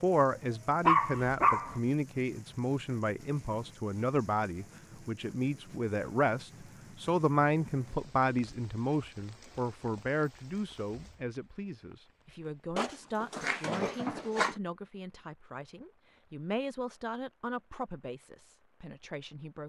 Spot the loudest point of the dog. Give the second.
1 s.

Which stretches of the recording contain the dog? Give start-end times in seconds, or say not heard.
0.8-1.8, 12.8-14.6.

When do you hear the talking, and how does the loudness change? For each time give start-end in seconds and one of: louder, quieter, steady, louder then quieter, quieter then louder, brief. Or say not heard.
0.0-19.6 quieter.